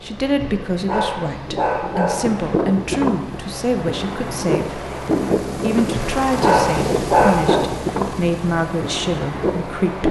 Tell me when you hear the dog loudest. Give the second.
7 s.